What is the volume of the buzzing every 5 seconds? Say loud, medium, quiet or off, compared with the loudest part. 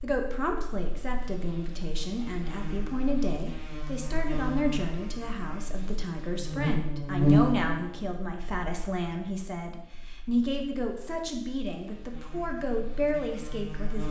quiet, loud, quiet.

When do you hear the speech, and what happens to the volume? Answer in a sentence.
The speech can be heard from 0.0 to 14.0 s, at a steady volume.